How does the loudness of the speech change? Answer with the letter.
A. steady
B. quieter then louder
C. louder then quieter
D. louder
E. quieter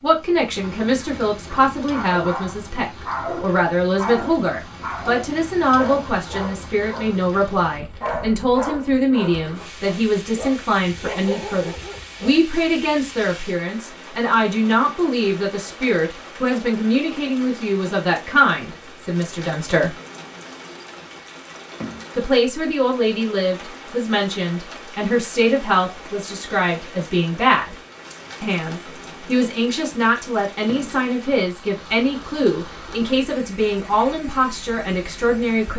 A.